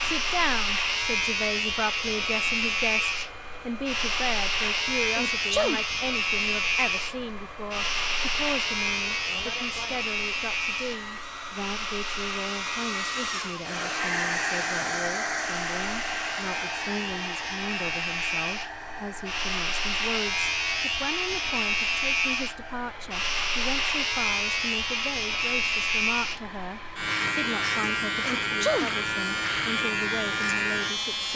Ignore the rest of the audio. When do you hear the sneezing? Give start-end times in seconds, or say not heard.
5.2-5.8, 28.2-28.9.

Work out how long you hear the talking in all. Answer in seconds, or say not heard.
31 s.